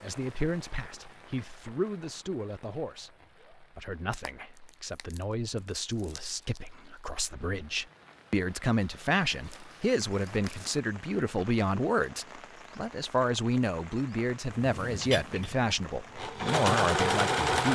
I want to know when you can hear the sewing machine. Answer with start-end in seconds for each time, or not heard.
14.6-17.6.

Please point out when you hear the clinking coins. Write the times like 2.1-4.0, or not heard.
not heard.